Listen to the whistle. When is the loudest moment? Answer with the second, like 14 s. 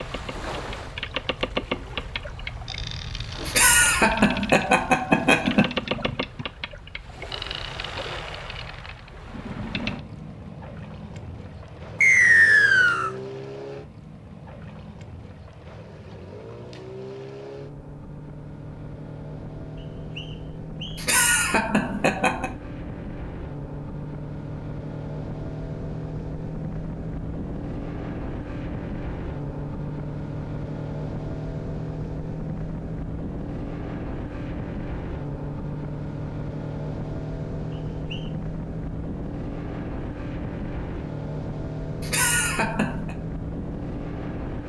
12 s.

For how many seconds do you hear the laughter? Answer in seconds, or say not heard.
5 s.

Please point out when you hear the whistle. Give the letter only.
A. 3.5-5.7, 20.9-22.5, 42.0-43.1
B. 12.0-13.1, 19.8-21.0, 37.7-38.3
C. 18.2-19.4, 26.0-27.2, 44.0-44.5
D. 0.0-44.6
B.